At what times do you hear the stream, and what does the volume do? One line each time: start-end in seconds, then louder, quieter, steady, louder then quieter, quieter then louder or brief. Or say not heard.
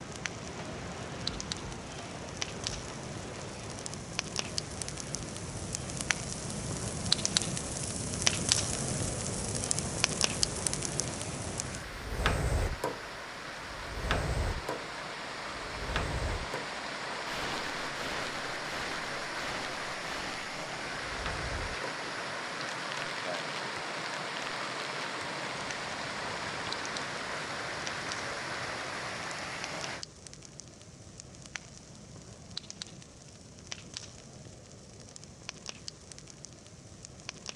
0.0-30.1 louder.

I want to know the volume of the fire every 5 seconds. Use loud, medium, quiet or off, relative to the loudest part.
medium, loud, loud, medium, medium, quiet, quiet, quiet.